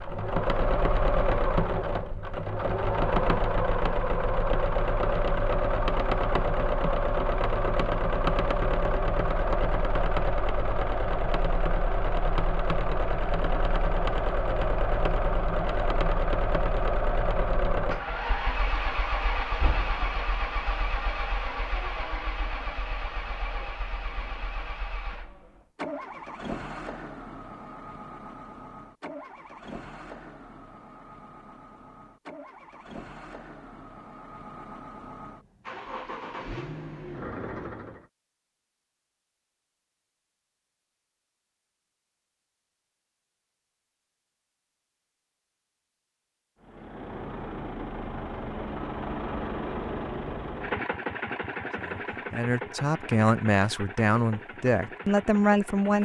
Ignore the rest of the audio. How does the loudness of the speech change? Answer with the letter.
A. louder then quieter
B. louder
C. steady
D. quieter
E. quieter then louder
B.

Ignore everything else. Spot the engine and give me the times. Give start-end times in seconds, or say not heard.
0.0-38.0, 46.6-56.0.